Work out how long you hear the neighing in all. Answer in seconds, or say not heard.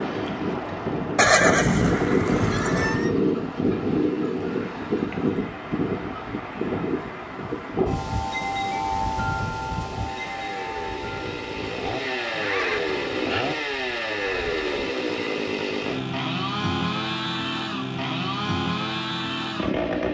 3 s.